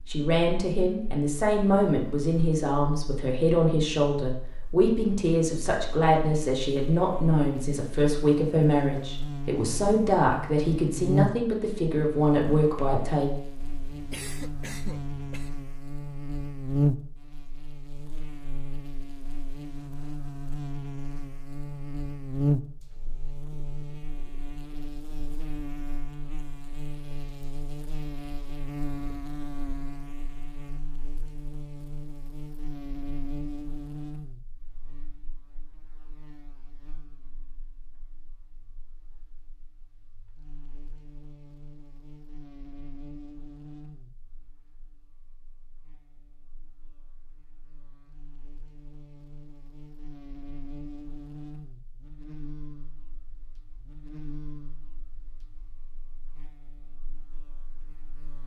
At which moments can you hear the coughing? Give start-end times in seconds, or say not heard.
13.6-15.6.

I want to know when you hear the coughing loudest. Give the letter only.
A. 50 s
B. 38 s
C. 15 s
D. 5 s
C.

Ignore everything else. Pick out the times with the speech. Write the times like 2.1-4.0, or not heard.
0.1-13.3.